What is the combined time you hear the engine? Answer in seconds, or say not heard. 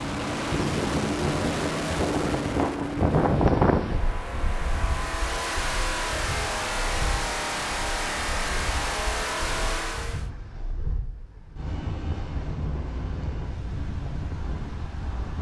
10 s.